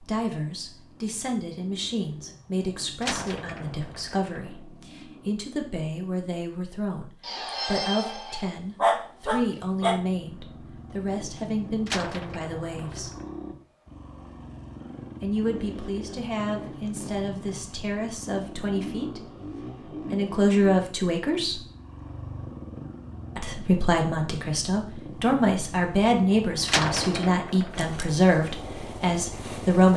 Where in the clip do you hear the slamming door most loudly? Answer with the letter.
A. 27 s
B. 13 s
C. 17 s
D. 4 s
A.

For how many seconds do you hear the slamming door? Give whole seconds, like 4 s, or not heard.
4 s.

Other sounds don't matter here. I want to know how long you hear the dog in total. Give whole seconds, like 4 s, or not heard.
3 s.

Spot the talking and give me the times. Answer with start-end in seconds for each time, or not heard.
0.0-13.1, 15.2-19.3, 20.0-21.6, 23.4-29.9.